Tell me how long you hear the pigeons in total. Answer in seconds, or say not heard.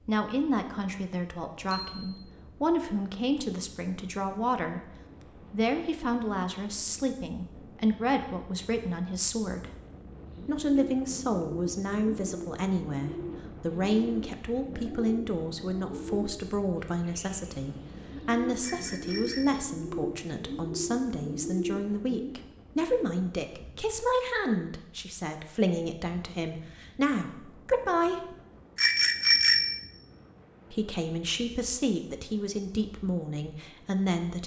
12 s.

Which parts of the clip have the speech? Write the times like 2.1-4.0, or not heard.
0.1-4.9, 5.5-9.7, 10.4-28.4, 30.7-34.4.